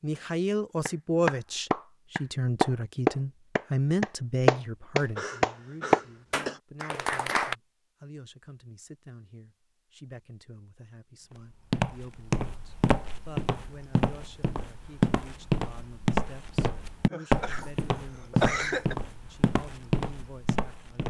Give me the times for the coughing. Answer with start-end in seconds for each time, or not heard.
5.2-6.6, 17.1-18.9.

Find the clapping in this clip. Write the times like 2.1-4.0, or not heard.
0.8-7.5.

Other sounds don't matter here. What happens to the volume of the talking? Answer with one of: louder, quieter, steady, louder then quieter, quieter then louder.
quieter.